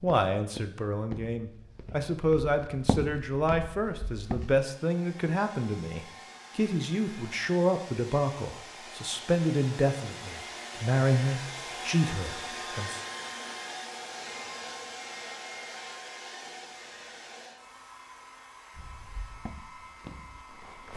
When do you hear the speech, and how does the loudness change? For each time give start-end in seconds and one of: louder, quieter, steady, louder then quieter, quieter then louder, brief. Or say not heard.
0.0-13.0 steady.